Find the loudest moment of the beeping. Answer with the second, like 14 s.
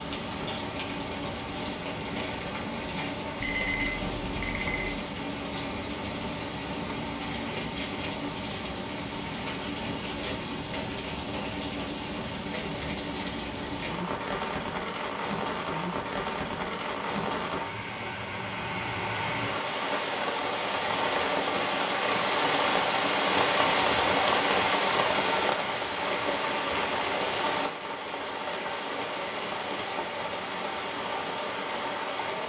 4 s.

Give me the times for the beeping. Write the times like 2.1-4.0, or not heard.
3.4-5.0.